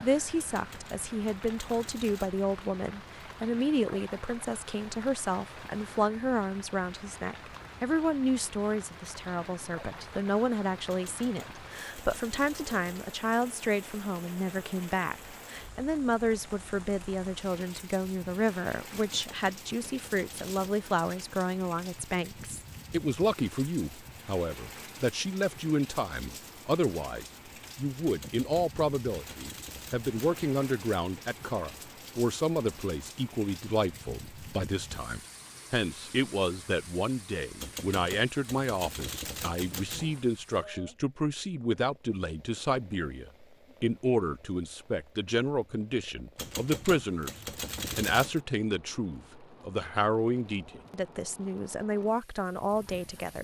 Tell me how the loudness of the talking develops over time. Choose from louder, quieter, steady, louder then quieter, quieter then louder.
steady.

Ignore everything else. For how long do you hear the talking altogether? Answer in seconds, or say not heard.
53 s.